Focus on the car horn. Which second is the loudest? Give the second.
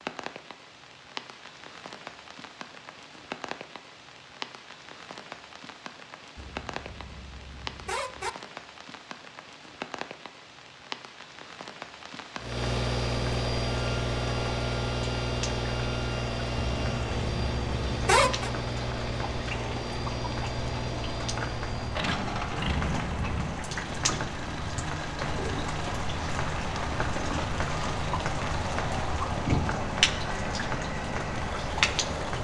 18 s.